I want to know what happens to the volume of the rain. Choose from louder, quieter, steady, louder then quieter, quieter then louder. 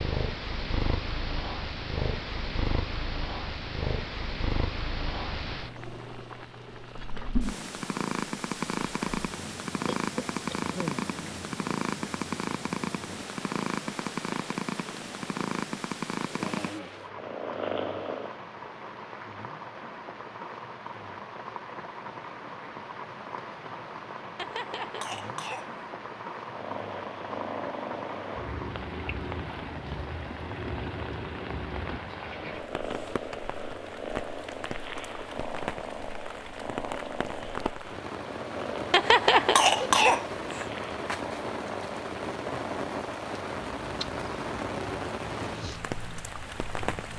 louder.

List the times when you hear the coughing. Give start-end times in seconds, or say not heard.
9.8-11.0, 24.4-25.7, 38.9-40.6.